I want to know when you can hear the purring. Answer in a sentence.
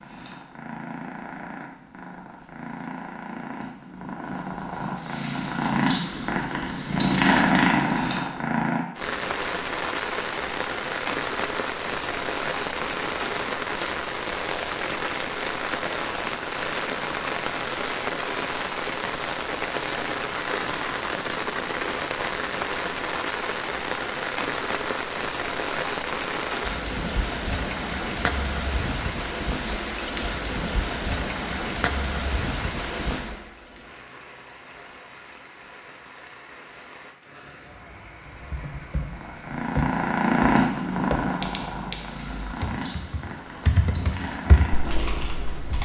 You can hear the purring from 0.0 to 8.8 s and from 39.0 to 45.8 s.